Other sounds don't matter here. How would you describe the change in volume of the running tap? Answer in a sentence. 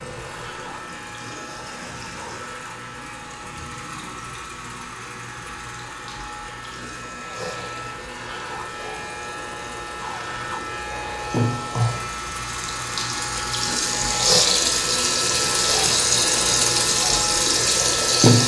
The volume of the running tap goes up.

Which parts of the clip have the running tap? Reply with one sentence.
The running tap can be heard from 0.0 to 18.4 s.